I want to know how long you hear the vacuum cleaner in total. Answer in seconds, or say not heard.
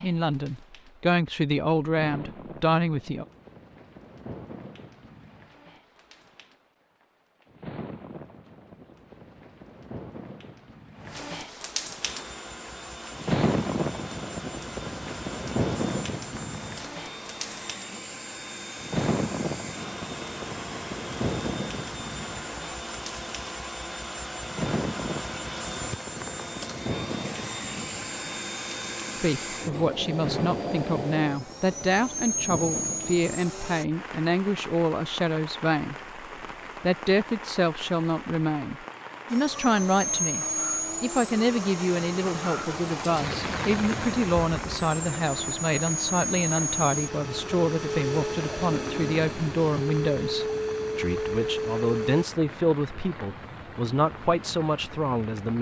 35 s.